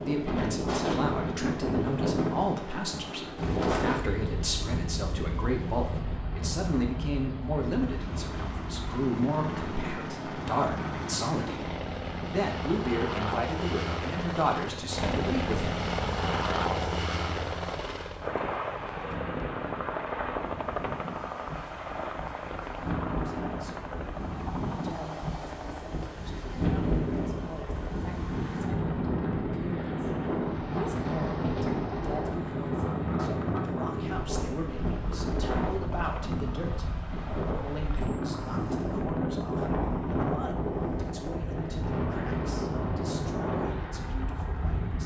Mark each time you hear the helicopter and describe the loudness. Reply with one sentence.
You can hear the helicopter from 0.0 to 45.0 s, getting louder then quieter.